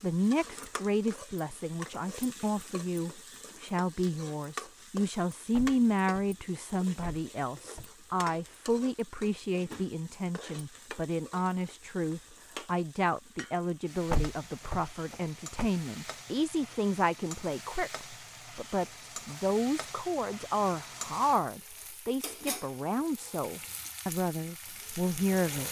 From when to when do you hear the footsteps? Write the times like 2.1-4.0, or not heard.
not heard.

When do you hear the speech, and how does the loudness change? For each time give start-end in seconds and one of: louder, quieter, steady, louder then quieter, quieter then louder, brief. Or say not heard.
0.0-25.6 steady.